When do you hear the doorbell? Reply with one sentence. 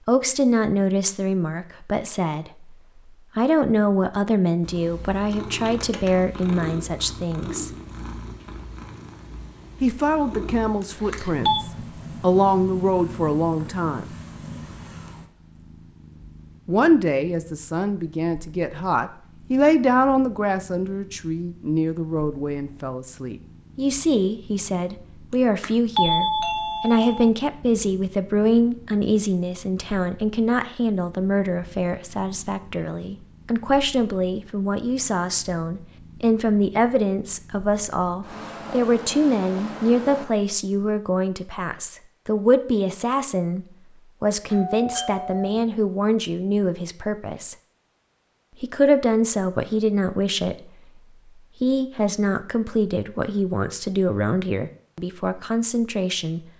The doorbell can be heard from 10.8 to 11.7 s, from 25.3 to 27.3 s and from 44.5 to 45.6 s.